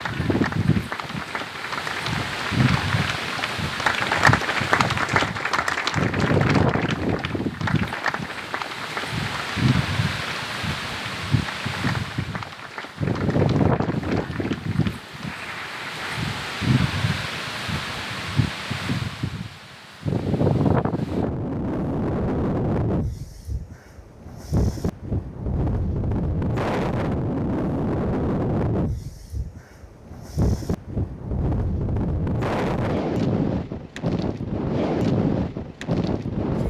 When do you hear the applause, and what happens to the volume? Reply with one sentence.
You can hear the applause from 0.0 to 16.2 s, getting louder then quieter.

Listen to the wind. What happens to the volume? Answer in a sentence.
The volume of the wind stays about the same.